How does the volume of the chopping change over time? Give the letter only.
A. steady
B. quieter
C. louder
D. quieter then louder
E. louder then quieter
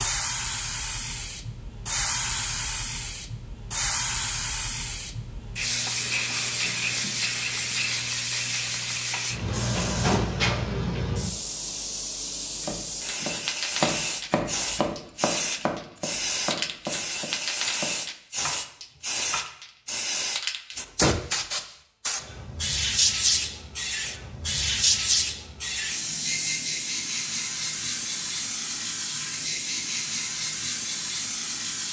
B.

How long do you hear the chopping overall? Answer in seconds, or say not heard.
7 s.